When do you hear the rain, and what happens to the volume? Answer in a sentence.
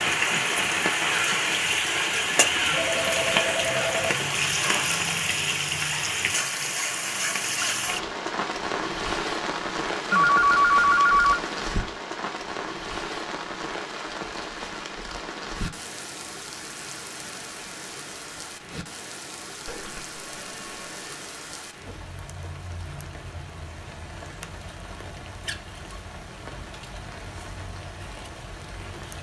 The rain can be heard from 0.0 to 29.1 s, getting quieter.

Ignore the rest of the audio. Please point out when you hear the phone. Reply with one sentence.
You can hear the phone from 2.7 to 4.1 s, from 10.1 to 11.4 s and from 19.6 to 21.1 s.